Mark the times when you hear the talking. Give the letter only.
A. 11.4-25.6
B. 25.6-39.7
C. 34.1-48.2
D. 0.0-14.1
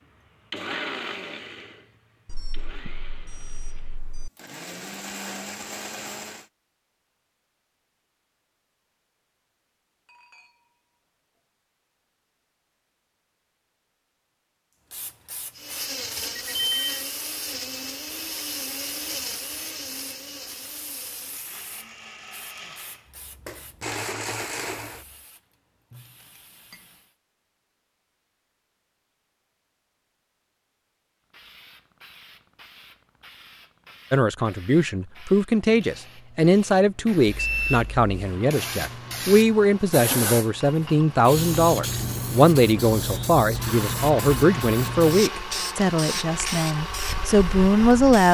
C.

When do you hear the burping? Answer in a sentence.
The burping can't be heard in this clip.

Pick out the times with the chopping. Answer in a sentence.
You can't hear the chopping here.